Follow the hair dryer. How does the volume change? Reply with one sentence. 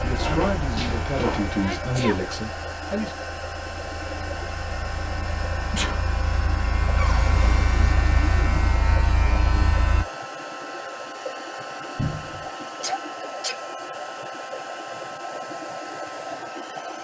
The loudness of the hair dryer stays about the same.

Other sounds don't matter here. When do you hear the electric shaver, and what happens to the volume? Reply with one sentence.
The electric shaver can be heard from 0.0 to 10.1 s, getting quieter then louder.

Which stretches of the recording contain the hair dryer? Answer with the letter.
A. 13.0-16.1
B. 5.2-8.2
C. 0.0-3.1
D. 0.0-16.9
D.